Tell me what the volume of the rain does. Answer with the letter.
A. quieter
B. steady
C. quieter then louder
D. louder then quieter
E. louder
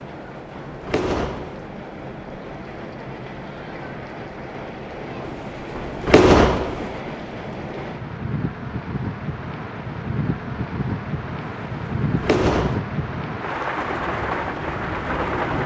E.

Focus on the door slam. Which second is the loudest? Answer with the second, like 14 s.
6 s.